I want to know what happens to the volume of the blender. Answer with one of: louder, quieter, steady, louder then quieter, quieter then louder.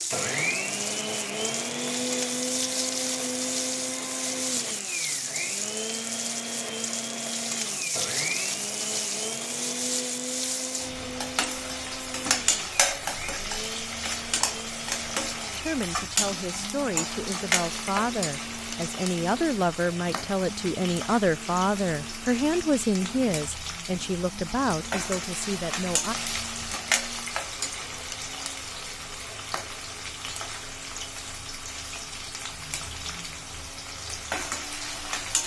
quieter.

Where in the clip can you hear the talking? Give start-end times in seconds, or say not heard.
15.6-26.1.